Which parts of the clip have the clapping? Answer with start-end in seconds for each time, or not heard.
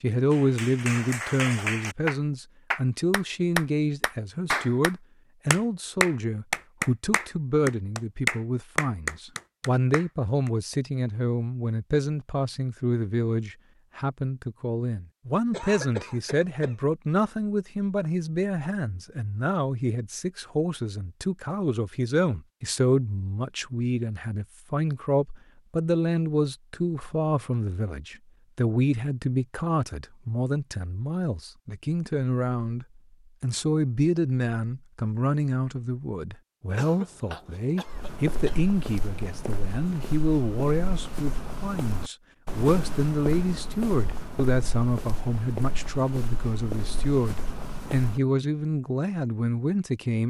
0.3-10.5.